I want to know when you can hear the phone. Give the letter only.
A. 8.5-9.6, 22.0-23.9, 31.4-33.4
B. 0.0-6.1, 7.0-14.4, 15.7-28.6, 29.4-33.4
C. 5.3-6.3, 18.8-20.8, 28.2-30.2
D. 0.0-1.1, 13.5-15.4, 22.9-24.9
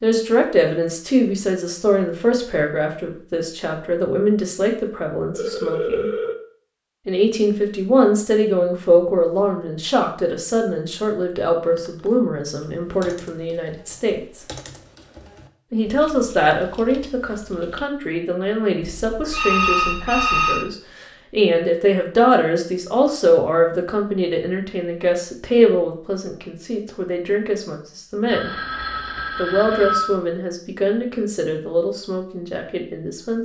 C.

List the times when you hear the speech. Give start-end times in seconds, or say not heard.
0.0-6.1, 7.0-14.4, 15.7-28.6, 29.4-33.4.